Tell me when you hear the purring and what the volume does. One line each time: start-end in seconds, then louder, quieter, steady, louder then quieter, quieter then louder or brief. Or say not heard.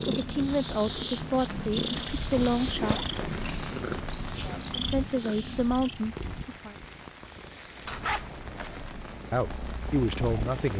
0.0-10.7 quieter then louder.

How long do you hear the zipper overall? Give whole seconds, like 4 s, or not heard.
2 s.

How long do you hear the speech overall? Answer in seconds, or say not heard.
7 s.